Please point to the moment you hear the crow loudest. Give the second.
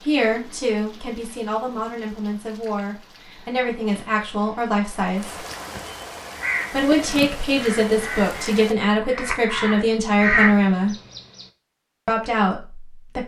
10 s.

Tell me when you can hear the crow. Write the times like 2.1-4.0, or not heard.
6.2-11.5.